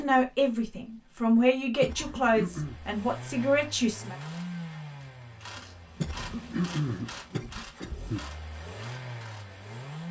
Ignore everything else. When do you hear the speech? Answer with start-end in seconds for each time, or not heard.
0.0-4.2.